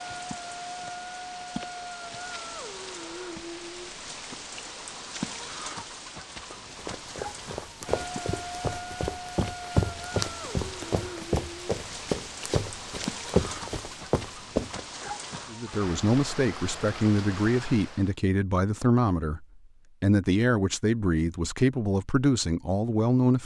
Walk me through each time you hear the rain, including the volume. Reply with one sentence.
You can hear the rain from 0.0 to 18.1 s, at a steady volume.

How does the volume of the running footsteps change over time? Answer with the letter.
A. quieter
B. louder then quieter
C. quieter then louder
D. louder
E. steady
D.